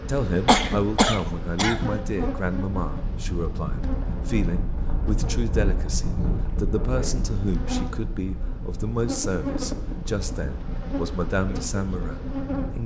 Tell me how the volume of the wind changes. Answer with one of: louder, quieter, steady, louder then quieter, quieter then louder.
louder then quieter.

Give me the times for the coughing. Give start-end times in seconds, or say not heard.
0.5-1.9.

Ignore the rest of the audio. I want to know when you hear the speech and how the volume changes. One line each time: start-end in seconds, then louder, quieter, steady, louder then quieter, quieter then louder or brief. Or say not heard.
0.1-12.8 steady.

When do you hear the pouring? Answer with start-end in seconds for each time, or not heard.
not heard.